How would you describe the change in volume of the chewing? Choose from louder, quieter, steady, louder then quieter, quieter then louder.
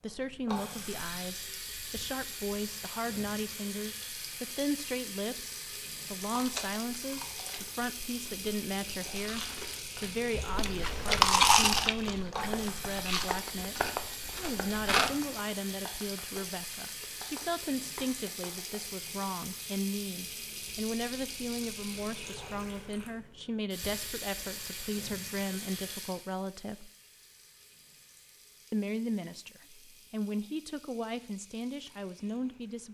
louder then quieter.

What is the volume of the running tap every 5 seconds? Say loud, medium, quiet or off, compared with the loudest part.
loud, loud, loud, loud, loud, medium, quiet.